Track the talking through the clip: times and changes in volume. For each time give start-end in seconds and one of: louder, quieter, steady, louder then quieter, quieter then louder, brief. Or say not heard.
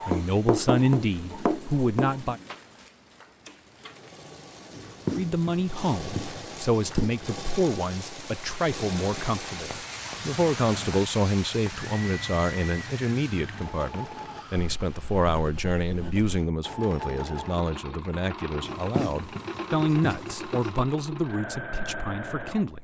0.1-2.4 brief
5.1-22.8 steady.